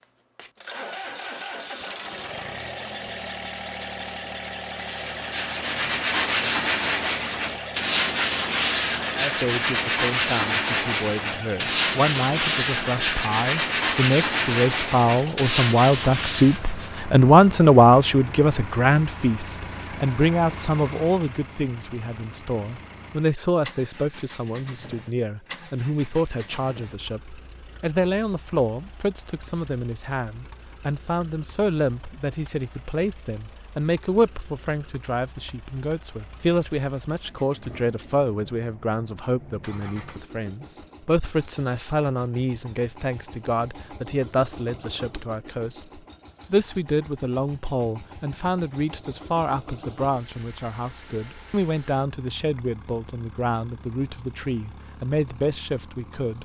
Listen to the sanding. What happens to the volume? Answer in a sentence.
The loudness of the sanding stays about the same.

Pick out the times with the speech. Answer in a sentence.
The speech can be heard from 9.2 to 56.4 s.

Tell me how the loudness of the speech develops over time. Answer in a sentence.
The volume of the speech goes down.